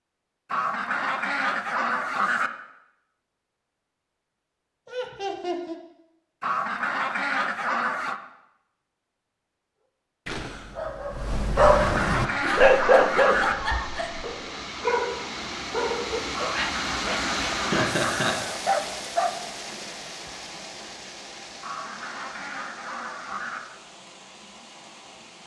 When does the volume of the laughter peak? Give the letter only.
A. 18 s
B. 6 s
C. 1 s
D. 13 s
A.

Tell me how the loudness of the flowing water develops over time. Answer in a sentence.
The volume of the flowing water goes up, then down.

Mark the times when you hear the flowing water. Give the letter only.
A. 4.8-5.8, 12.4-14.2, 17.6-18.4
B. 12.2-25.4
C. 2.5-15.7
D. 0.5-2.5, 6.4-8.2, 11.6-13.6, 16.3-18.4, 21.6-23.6
B.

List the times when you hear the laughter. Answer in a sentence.
You can hear the laughter from 4.8 to 5.8 s, from 12.4 to 14.2 s and from 17.6 to 18.4 s.